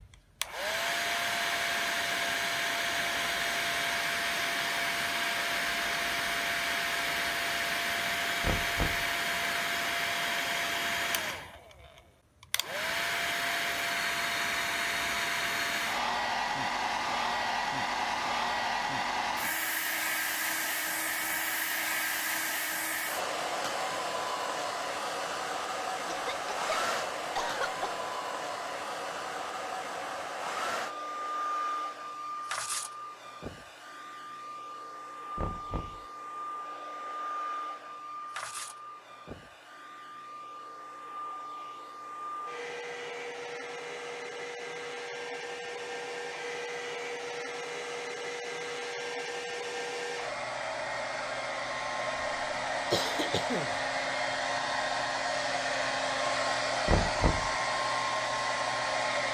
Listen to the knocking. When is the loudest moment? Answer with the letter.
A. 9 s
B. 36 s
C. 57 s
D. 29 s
C.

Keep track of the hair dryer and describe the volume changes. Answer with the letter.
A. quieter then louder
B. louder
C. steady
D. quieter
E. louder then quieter
A.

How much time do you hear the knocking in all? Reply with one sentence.
The knocking can be heard for 2 seconds in total.